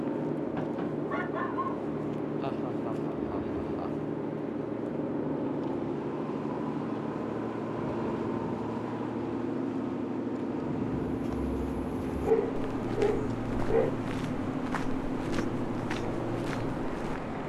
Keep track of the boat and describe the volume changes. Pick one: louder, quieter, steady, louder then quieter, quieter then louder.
steady.